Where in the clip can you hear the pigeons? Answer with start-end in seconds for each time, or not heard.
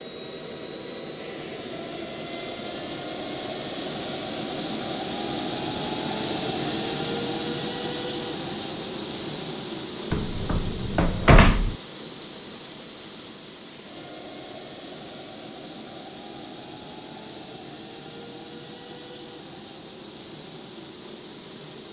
not heard.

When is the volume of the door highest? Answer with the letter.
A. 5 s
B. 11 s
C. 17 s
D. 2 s
B.